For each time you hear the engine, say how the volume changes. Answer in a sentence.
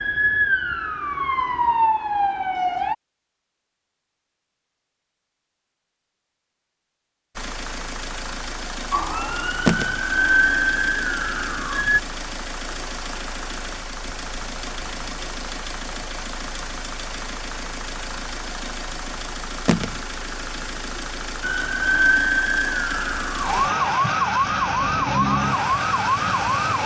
You can hear the engine from 7.3 to 26.8 s, at a steady volume.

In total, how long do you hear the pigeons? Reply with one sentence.
You can't hear the pigeons here.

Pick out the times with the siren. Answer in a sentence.
The siren can be heard from 0.0 to 3.0 s, from 8.9 to 12.0 s and from 21.4 to 26.8 s.